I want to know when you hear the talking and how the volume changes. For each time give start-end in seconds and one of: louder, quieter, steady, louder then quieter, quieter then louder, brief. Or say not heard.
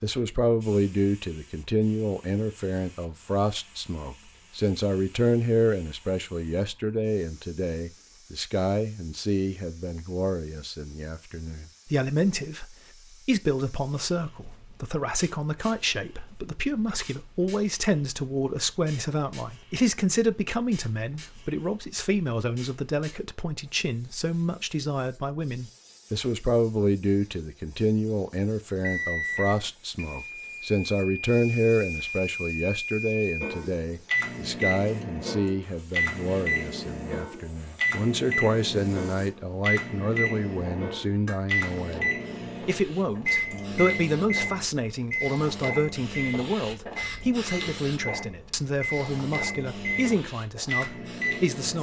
0.0-51.7 steady.